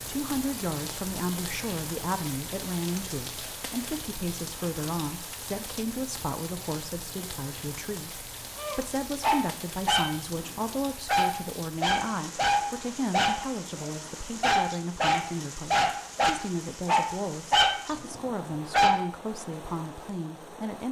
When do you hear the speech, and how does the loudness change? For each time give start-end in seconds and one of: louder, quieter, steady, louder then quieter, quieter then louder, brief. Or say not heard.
0.0-20.8 steady.